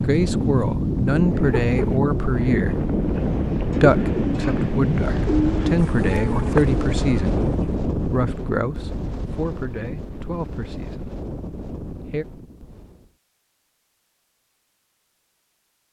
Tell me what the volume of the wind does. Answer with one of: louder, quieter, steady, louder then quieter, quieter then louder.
quieter.